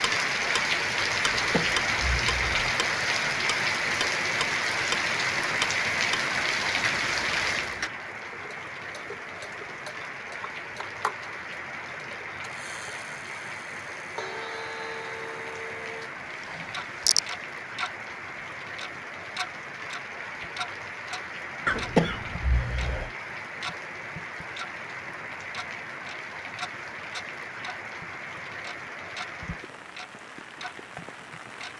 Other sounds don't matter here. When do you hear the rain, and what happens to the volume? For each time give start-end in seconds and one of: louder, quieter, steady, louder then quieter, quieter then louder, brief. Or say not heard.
0.0-31.7 quieter.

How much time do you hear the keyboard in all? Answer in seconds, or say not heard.
not heard.